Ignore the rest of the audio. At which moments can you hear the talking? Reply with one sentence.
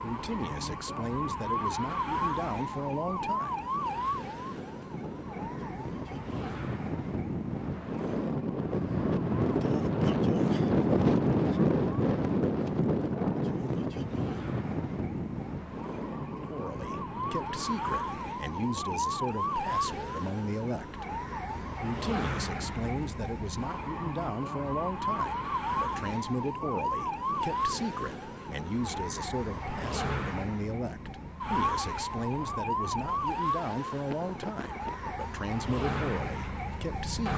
The talking can be heard from 0.0 to 3.6 s, from 16.3 to 21.1 s and from 21.8 to 37.3 s.